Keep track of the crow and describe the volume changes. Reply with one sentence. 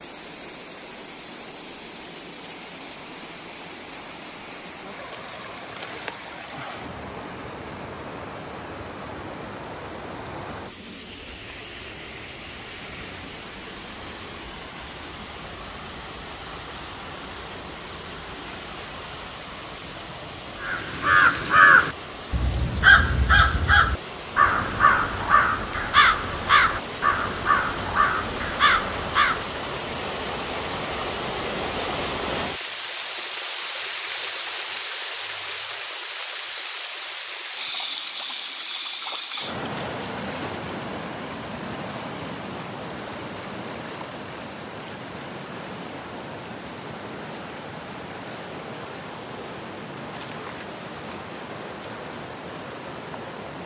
The volume of the crow goes down.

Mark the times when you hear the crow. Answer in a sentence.
The crow can be heard from 20.6 to 29.6 s.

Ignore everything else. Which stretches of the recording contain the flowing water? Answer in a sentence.
You can hear the flowing water from 0.0 to 53.6 s.